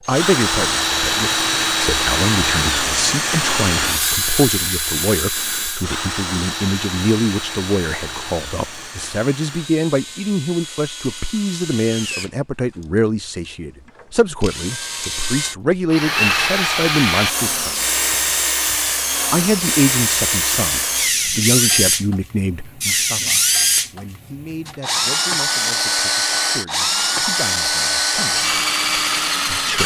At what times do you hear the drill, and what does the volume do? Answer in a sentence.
You can hear the drill from 0.1 to 29.8 s, getting quieter then louder.